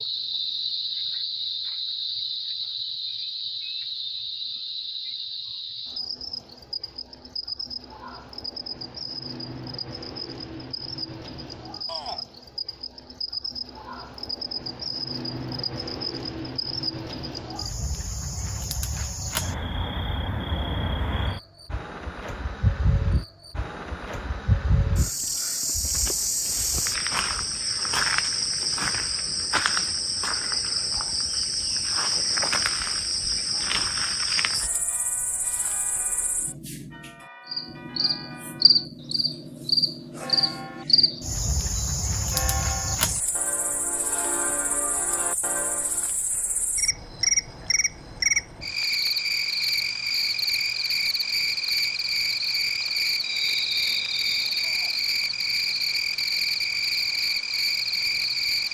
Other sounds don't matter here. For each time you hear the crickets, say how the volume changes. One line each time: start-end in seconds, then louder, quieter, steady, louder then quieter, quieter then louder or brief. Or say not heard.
0.0-58.6 louder.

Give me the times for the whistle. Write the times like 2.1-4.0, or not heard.
53.2-54.7.